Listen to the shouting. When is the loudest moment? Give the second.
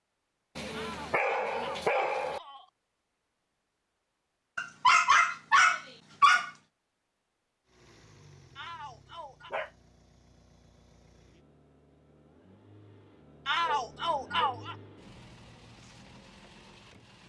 14 s.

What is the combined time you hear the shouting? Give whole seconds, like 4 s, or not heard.
4 s.